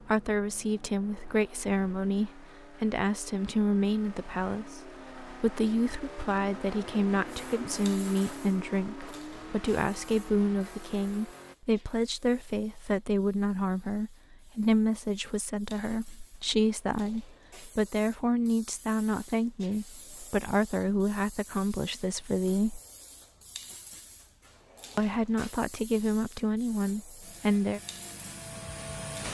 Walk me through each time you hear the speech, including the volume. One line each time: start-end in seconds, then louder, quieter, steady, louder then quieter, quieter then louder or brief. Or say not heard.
0.0-22.8 steady
24.9-27.8 brief.